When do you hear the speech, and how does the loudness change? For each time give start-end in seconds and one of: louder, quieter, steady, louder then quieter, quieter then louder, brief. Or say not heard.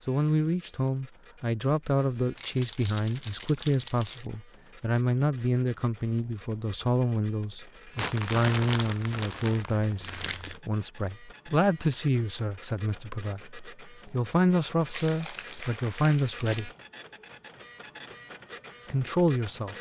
0.1-16.7 steady
18.9-19.7 brief.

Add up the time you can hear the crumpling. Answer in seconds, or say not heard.
6 s.